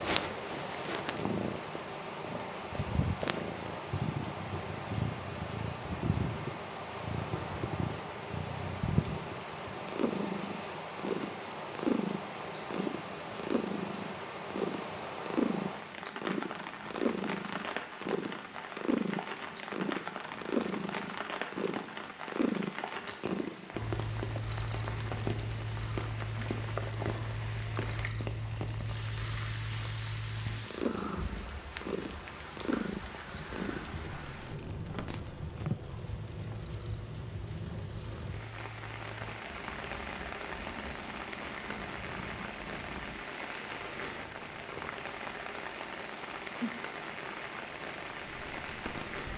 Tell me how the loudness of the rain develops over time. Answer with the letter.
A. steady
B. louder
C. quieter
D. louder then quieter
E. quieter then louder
A.